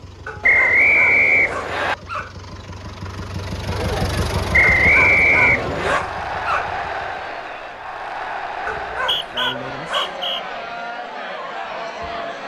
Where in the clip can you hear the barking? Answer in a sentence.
The barking can be heard from 0.2 to 2.4 s, from 4.8 to 6.8 s and from 8.7 to 10.2 s.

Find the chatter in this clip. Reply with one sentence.
You can hear the chatter from 3.6 to 12.4 s.